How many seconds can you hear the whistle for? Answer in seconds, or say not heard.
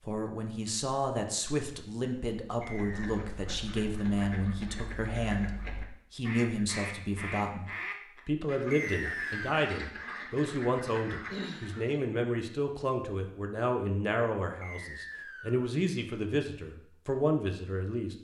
3 s.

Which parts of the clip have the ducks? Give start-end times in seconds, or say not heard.
2.6-12.0.